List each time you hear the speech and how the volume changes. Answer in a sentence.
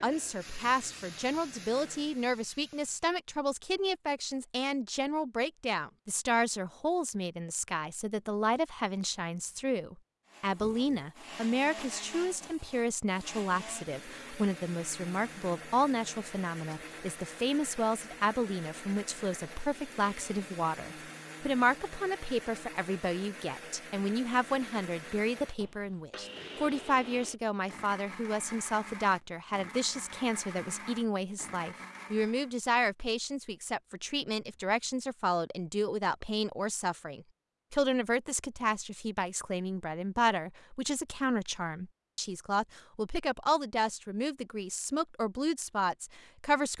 You can hear the speech from 0.0 to 46.7 s, at a steady volume.